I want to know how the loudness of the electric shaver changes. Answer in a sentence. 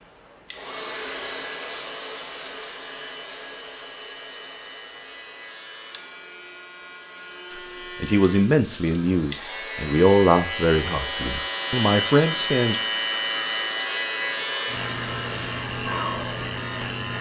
The loudness of the electric shaver goes up.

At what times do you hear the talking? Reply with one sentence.
The talking can be heard from 7.5 to 12.8 s.